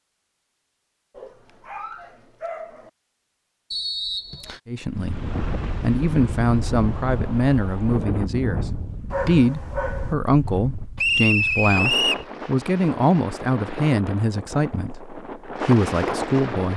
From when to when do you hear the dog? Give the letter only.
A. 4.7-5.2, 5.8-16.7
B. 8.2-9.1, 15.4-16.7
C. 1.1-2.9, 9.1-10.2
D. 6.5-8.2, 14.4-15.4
C.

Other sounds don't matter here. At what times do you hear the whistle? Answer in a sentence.
The whistle can be heard from 3.7 to 4.6 s and from 10.9 to 12.2 s.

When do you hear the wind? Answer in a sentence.
The wind can be heard from 4.9 to 16.7 s.